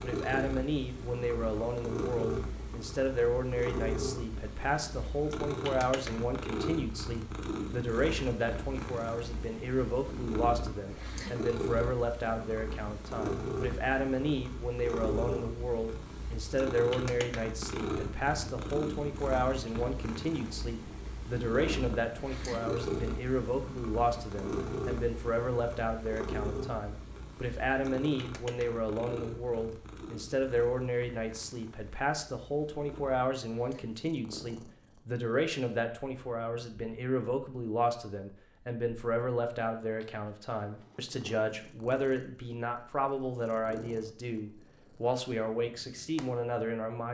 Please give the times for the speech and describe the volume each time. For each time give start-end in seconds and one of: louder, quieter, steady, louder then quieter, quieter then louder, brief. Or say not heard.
0.0-47.1 steady.